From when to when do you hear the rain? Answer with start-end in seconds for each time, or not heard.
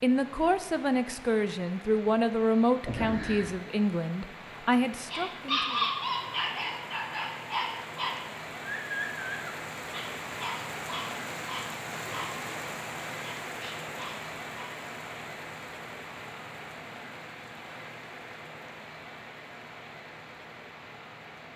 0.0-21.5.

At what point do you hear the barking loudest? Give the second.
6 s.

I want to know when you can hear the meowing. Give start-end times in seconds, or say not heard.
2.9-3.6.